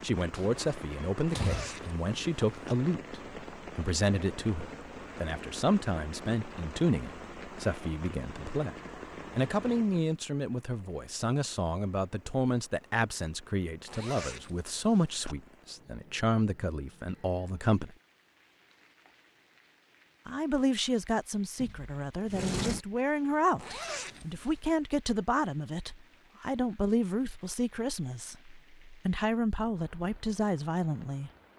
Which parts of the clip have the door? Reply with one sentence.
You can hear the door from 0.3 to 1.8 s and from 21.6 to 22.9 s.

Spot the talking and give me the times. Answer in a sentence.
The talking can be heard from 0.0 to 8.8 s, from 9.3 to 17.9 s and from 20.2 to 31.3 s.